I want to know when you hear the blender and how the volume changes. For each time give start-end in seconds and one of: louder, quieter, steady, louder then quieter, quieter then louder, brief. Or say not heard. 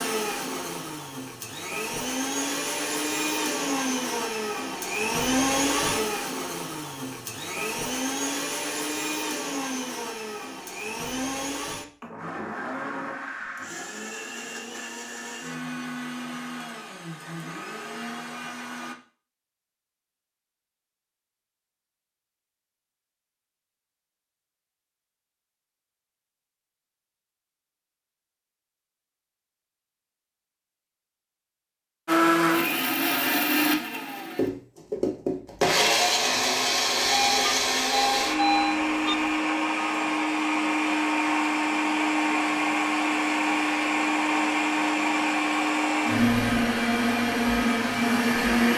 0.0-18.9 quieter
32.0-48.7 steady.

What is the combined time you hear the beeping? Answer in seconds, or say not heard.
2 s.